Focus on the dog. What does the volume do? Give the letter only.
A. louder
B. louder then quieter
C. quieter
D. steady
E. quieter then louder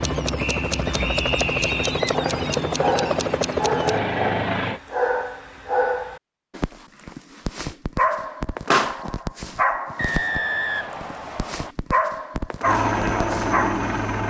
D.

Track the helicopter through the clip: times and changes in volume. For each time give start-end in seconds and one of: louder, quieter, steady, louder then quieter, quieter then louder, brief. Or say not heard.
0.0-4.8 steady
12.6-14.2 brief.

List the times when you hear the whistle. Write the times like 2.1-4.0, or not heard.
0.3-2.0, 9.9-11.8.